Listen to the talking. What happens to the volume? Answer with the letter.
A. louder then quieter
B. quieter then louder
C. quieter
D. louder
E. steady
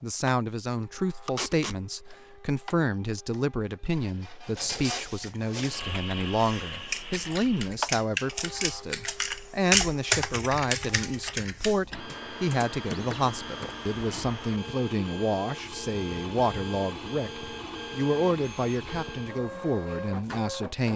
E.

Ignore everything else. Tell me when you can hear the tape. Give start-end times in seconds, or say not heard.
1.2-1.8.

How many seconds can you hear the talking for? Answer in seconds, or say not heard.
21 s.